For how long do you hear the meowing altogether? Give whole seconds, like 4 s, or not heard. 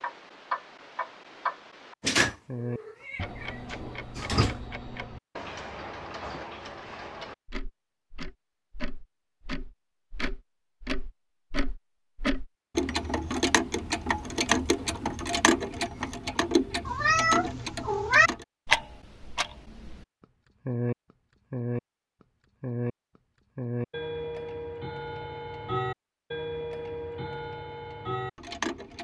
4 s.